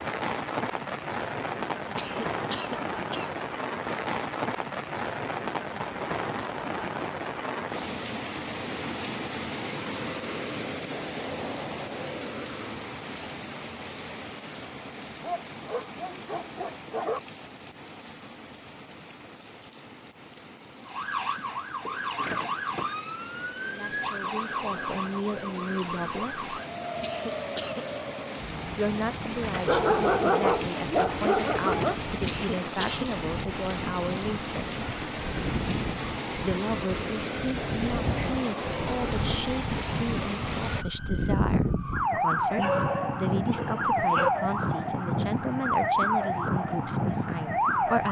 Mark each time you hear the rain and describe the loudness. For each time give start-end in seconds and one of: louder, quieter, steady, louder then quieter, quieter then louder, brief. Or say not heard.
0.0-40.9 quieter then louder.